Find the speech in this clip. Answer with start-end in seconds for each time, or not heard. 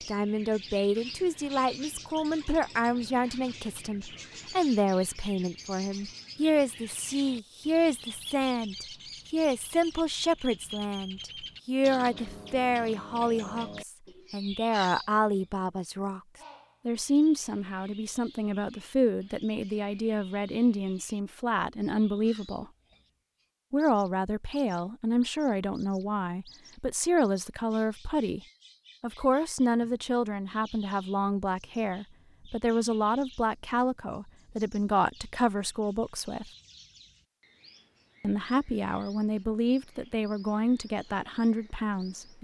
0.1-16.2, 16.9-22.6, 23.7-28.4, 29.0-36.5, 38.2-42.3.